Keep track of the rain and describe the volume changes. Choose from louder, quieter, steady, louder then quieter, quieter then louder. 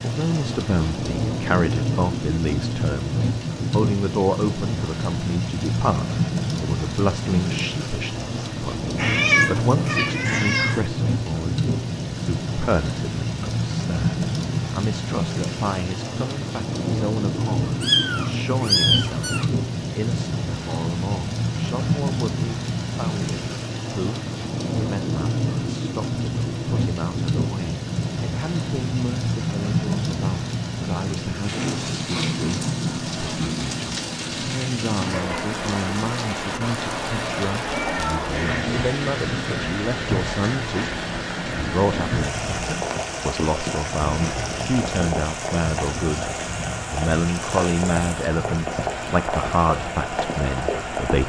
steady.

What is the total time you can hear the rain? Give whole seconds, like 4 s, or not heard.
51 s.